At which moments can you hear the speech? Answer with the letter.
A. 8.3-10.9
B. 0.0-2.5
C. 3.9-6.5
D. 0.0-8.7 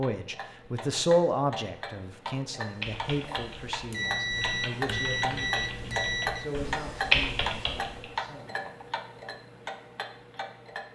D.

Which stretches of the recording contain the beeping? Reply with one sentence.
The beeping can be heard from 3.9 to 6.5 s.